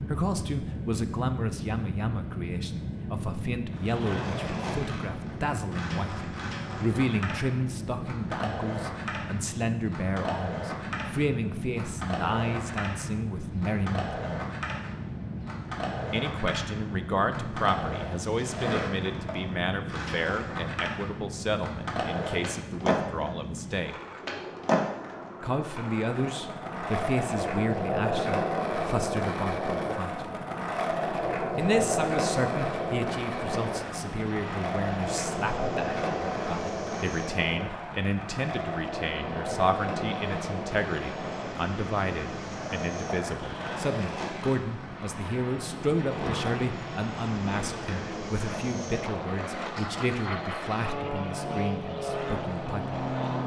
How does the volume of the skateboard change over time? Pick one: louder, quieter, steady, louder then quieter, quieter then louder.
louder then quieter.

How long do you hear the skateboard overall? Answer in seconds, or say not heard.
50 s.